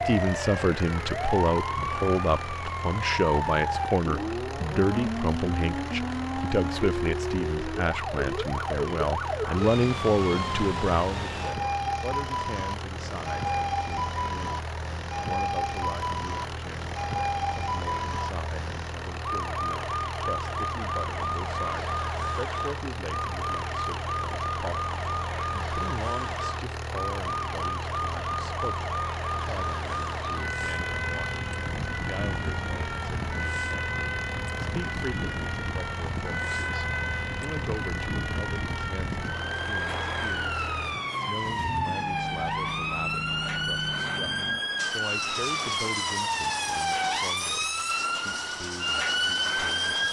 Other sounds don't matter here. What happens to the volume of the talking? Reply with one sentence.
The volume of the talking goes down.